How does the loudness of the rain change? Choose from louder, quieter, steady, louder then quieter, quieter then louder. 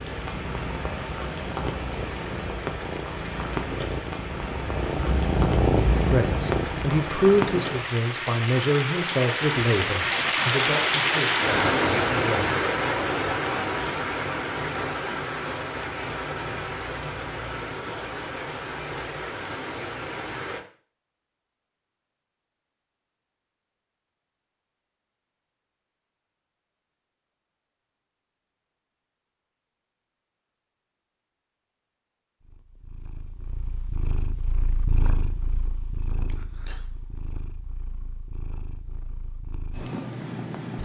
louder then quieter.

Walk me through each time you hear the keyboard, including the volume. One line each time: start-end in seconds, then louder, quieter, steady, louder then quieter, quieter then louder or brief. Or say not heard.
not heard.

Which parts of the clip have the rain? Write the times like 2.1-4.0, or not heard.
0.0-20.6.